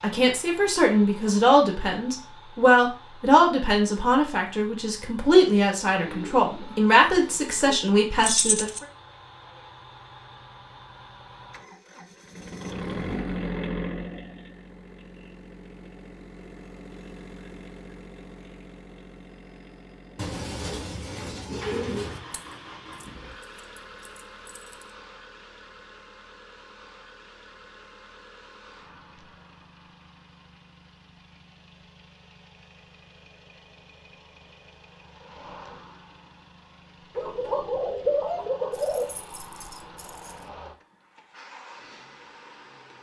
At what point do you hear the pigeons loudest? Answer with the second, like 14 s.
38 s.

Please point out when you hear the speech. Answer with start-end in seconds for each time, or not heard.
0.0-8.7.